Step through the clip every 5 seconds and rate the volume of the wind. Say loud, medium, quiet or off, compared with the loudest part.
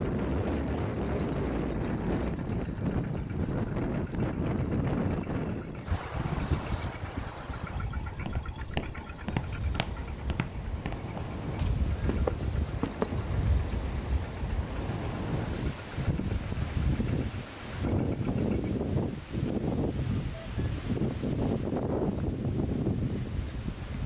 loud, medium, medium, loud, loud.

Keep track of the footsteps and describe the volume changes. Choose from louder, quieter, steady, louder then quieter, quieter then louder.
quieter then louder.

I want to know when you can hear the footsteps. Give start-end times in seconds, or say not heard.
8.1-13.2.